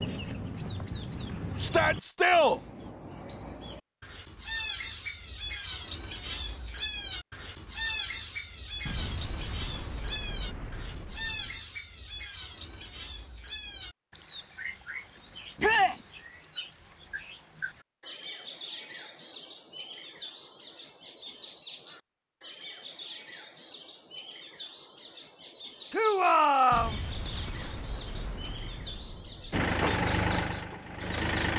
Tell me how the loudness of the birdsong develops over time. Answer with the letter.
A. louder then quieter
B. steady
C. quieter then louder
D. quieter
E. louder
D.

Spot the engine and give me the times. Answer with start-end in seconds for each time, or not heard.
29.5-31.5.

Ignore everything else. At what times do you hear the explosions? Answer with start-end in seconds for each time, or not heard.
8.8-11.6, 26.7-29.6.